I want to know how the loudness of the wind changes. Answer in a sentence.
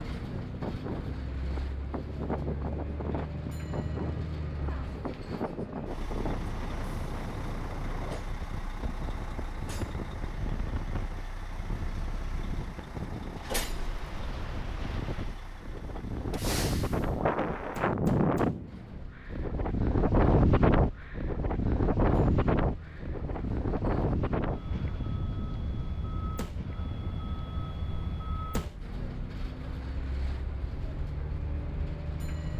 The volume of the wind goes up, then down.